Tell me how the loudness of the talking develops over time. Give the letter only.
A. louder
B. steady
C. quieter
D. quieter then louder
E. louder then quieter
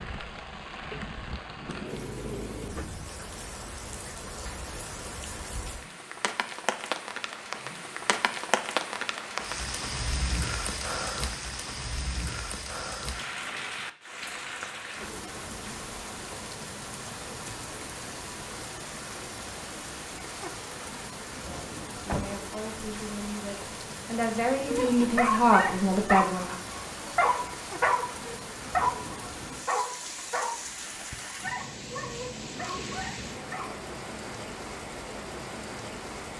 A.